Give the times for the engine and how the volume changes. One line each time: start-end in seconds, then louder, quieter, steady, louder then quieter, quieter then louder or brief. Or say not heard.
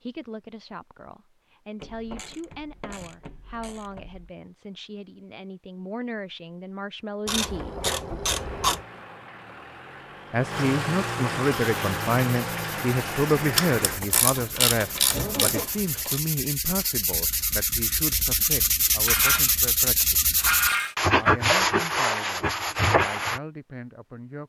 8.3-15.7 louder then quieter.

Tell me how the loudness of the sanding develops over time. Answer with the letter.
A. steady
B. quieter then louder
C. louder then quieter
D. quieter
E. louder
E.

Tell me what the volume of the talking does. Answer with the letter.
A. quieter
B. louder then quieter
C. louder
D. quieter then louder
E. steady
B.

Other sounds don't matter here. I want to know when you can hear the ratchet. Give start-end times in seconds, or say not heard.
1.8-4.3, 7.2-8.8, 13.6-16.2, 19.1-20.9.